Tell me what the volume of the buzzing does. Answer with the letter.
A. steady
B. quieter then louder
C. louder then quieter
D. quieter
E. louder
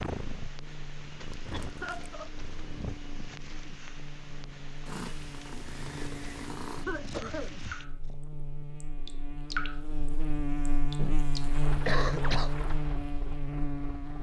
E.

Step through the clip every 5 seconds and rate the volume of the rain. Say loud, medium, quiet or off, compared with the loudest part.
medium, loud, loud.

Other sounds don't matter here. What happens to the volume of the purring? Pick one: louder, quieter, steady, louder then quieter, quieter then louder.
quieter then louder.